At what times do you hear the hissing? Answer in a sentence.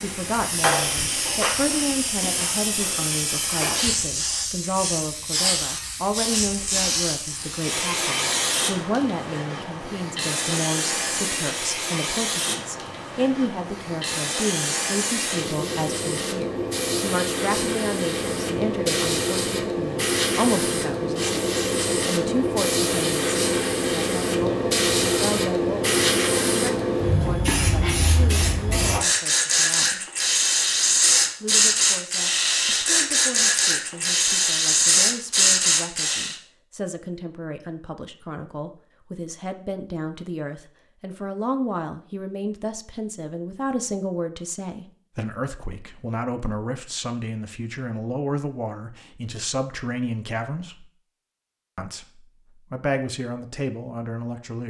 You can hear the hissing from 0.0 to 36.4 s.